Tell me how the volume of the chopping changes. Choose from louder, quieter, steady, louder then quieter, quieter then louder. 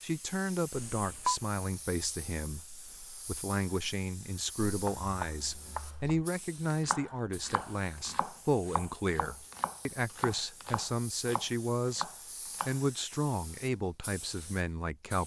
steady.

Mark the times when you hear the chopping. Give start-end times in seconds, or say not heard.
4.7-13.2.